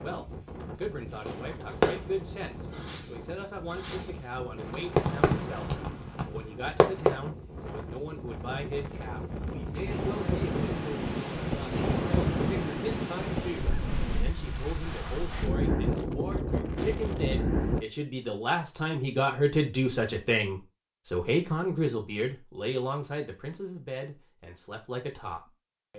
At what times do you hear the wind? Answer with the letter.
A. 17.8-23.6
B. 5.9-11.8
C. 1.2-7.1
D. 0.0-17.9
D.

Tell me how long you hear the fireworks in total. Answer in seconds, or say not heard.
6 s.